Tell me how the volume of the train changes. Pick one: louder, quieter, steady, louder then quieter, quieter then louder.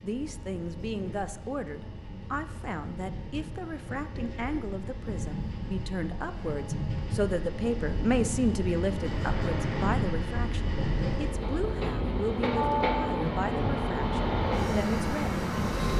louder.